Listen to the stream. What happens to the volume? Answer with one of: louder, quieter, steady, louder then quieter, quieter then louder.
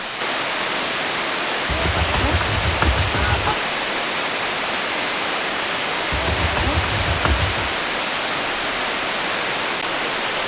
steady.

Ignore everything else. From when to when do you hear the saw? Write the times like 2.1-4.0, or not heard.
1.6-3.5, 6.1-7.8.